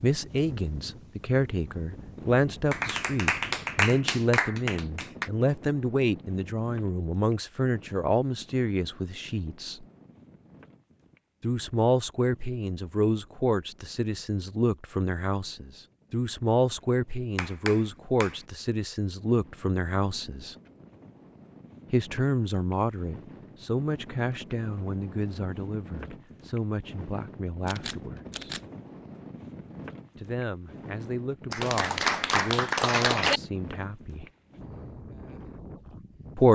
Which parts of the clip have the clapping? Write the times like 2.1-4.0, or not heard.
2.7-5.3, 17.4-18.4, 31.5-33.4.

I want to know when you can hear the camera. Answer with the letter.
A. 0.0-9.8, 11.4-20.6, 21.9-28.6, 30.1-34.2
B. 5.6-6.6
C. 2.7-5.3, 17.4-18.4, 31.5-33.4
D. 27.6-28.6
D.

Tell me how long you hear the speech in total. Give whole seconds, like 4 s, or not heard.
30 s.